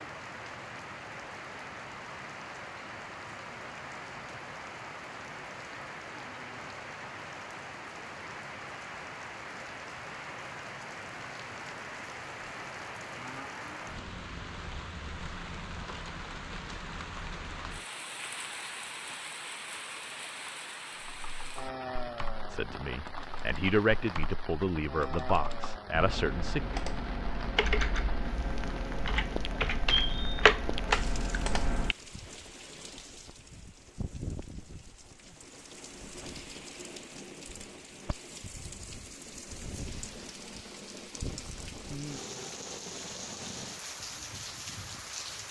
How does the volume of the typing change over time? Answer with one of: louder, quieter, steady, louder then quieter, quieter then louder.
louder.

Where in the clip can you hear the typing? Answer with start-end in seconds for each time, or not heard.
20.9-31.9.